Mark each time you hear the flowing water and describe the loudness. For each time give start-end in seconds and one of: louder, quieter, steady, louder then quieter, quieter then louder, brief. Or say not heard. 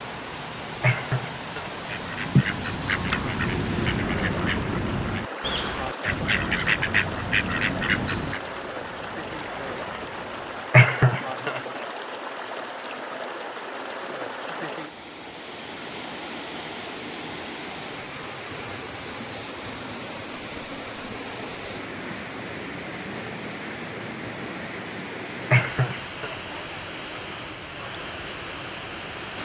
0.0-29.4 steady.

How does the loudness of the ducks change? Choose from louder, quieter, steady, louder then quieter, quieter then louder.
quieter.